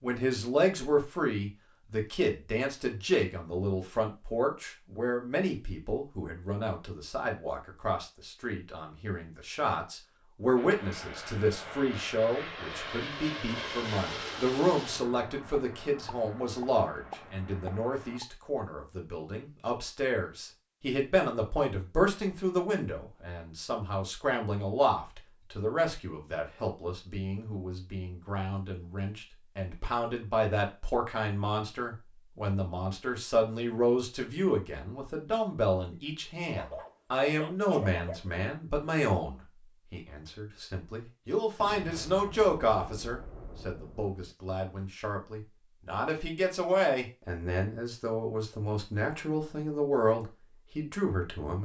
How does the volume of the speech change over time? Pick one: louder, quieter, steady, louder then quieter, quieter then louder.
steady.